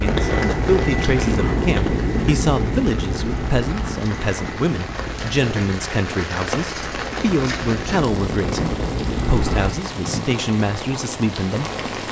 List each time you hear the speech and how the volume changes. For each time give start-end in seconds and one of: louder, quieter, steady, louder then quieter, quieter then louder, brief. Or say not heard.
0.0-12.0 steady.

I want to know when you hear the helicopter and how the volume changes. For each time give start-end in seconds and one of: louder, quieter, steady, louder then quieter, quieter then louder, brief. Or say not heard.
0.0-9.8 quieter then louder.